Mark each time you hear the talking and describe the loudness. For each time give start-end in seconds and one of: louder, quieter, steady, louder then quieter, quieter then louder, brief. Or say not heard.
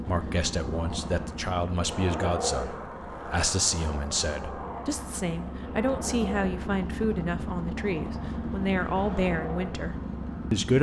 0.1-10.7 steady.